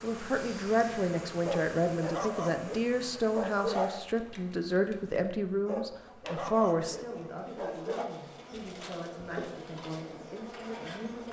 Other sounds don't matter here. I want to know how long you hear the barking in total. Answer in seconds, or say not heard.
5 s.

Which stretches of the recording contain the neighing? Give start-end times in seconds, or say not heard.
not heard.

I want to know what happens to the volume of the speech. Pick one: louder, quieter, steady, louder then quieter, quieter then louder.
quieter.